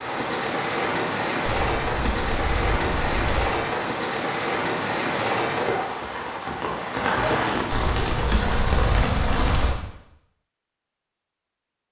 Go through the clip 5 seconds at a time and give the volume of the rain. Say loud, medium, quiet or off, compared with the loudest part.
loud, loud, off.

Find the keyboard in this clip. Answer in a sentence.
You can hear the keyboard from 1.4 to 3.5 s and from 7.7 to 9.8 s.